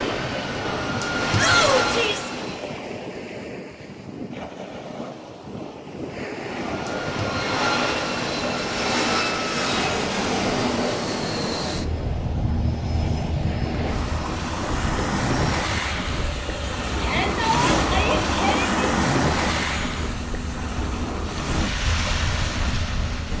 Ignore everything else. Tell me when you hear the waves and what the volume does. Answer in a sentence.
You can hear the waves from 0.0 to 23.3 s, getting louder.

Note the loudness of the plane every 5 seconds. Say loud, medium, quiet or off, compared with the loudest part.
loud, loud, loud, medium, medium.